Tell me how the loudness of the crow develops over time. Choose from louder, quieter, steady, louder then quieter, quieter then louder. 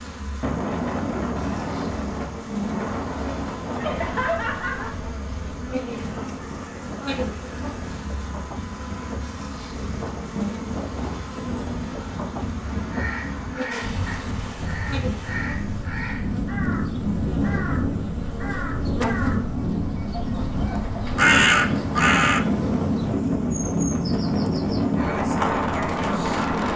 louder.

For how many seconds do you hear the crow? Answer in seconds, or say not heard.
10 s.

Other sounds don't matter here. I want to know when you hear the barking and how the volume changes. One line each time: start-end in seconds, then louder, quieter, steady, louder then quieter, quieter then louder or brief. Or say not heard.
not heard.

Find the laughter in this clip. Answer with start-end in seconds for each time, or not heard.
3.8-5.0.